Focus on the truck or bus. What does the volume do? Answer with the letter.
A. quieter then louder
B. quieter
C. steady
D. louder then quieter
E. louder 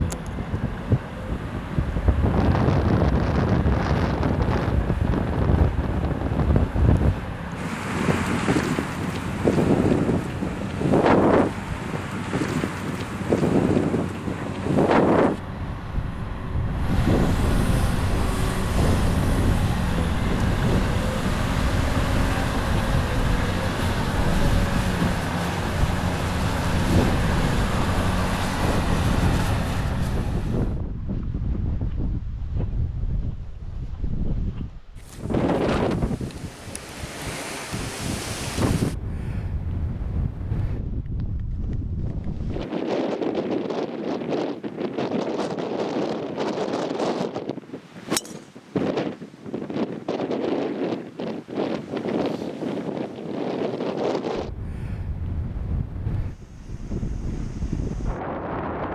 E.